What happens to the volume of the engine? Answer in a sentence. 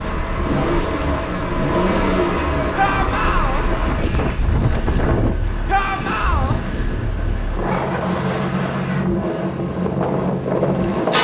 The volume of the engine goes down, then up.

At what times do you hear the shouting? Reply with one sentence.
The shouting can be heard from 2.8 to 3.6 s and from 5.7 to 6.5 s.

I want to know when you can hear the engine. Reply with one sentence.
The engine can be heard from 0.0 to 11.1 s.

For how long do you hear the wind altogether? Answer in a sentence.
You can hear the wind for 11 seconds altogether.